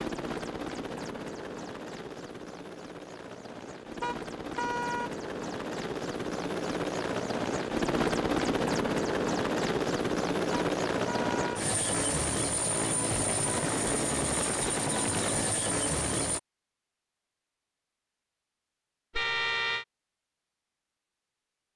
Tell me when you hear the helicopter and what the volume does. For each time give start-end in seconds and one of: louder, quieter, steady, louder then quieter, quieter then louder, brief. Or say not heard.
0.0-16.4 louder.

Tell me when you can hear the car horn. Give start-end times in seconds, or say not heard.
4.0-5.1, 10.5-11.6, 19.1-19.9.